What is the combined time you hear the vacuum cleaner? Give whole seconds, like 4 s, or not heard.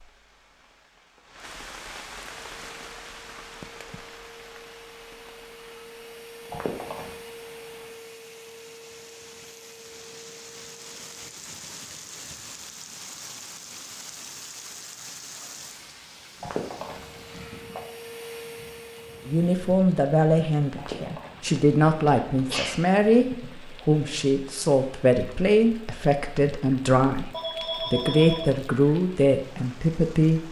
11 s.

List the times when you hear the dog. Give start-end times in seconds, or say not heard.
not heard.